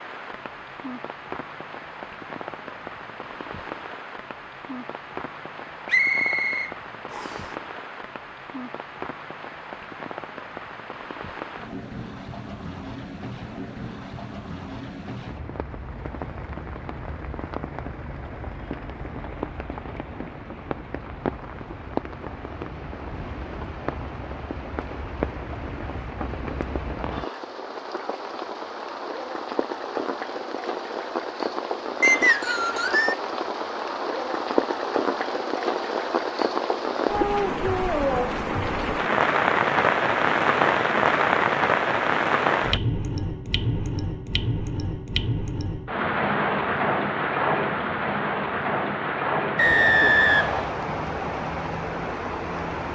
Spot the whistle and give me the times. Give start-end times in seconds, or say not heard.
5.8-7.5, 32.0-33.1, 49.5-50.8.